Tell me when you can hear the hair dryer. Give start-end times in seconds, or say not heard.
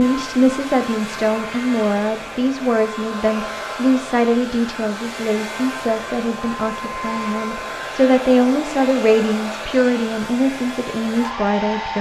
0.0-11.9.